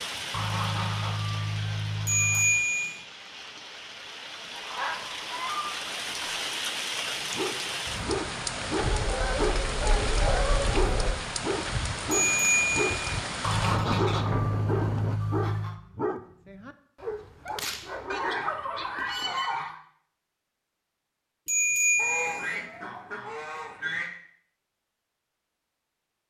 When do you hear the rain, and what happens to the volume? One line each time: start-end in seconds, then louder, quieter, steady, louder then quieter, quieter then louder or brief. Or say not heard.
0.0-15.2 louder.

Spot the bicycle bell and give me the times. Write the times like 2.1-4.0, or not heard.
2.0-3.0, 12.1-13.0, 21.4-22.6.